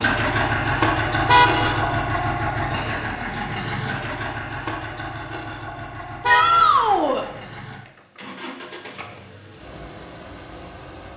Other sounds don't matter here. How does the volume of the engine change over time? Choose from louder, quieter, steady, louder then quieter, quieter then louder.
quieter.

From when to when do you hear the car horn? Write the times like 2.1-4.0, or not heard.
1.2-2.0, 6.2-6.9.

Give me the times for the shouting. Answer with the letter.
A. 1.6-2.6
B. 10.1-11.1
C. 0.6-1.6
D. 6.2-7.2
D.